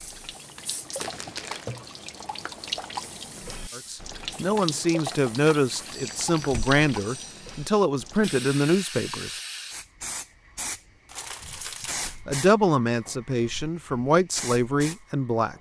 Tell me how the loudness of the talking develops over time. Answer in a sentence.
The volume of the talking stays about the same.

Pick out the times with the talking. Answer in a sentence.
The talking can be heard from 3.8 to 9.4 s and from 12.2 to 15.5 s.